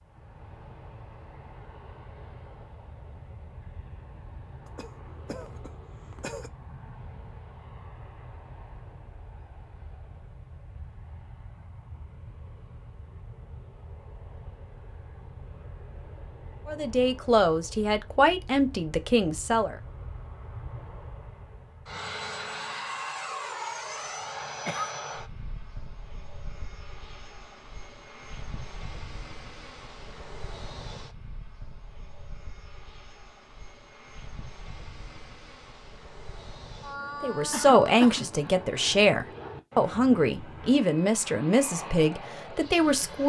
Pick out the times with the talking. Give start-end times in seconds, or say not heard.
16.6-19.8, 37.2-43.2.